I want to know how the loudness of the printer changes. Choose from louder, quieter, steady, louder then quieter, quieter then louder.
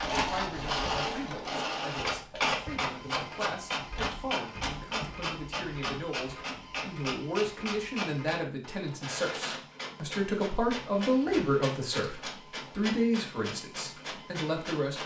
quieter.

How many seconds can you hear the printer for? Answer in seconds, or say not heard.
15 s.